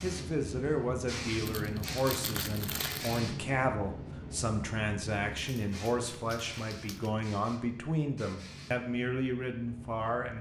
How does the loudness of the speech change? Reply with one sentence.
The volume of the speech stays about the same.